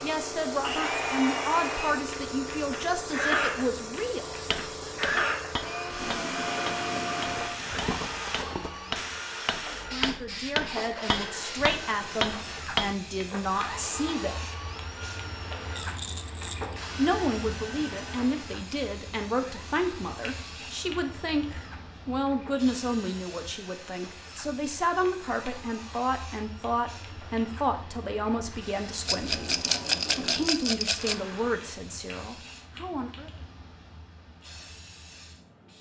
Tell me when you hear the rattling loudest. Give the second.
30 s.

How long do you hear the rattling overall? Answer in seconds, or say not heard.
5 s.